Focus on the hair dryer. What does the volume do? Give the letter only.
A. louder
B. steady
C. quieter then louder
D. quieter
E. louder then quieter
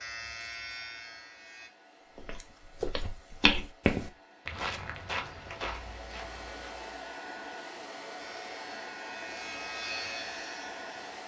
A.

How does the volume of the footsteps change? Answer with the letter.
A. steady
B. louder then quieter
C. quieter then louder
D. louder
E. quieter
B.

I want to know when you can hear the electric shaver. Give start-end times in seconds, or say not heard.
0.0-1.7, 8.2-11.1.